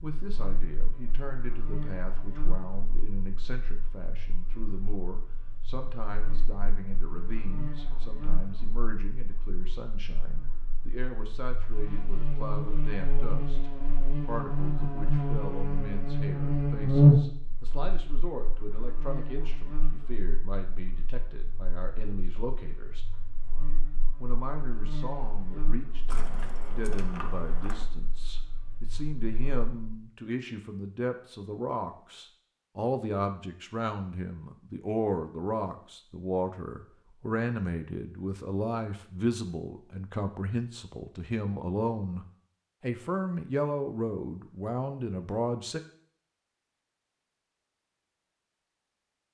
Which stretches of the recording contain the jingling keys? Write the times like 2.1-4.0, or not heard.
26.1-27.9.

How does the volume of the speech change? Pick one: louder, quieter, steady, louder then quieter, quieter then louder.
louder.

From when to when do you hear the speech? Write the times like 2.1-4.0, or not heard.
0.0-23.1, 24.2-45.8.